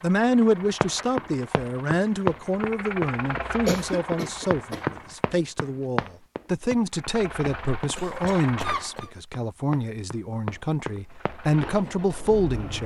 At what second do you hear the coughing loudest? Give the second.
4 s.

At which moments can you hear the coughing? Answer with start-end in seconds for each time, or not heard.
3.6-4.8, 8.0-9.1.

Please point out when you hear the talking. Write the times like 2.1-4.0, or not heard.
0.0-12.8.